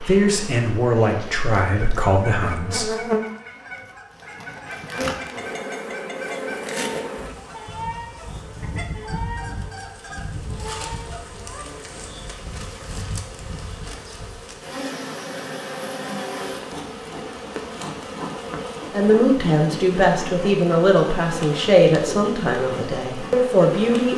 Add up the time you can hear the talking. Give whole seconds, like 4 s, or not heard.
8 s.